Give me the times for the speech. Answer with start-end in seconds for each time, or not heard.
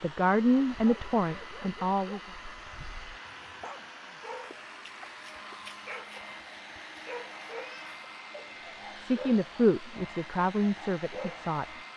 0.0-2.2, 8.9-11.7.